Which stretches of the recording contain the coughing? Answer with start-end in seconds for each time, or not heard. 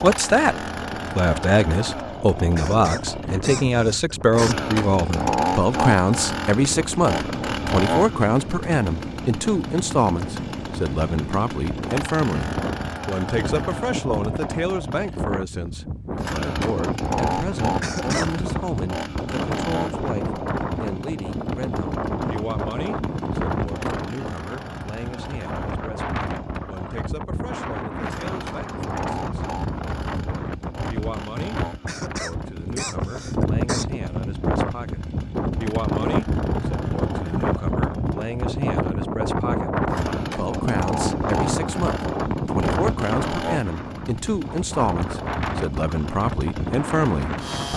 2.5-4.5, 17.8-18.4, 31.9-33.9.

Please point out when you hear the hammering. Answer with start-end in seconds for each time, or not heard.
not heard.